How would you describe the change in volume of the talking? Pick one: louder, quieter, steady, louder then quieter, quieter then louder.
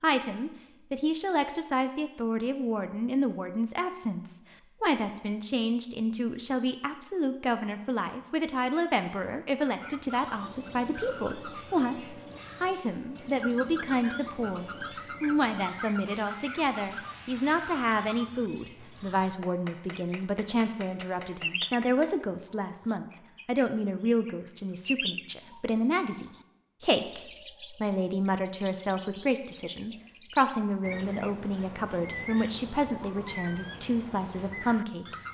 steady.